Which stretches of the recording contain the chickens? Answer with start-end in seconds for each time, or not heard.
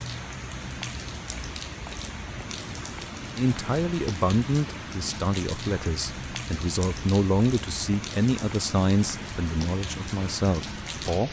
not heard.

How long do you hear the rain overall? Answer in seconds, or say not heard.
11 s.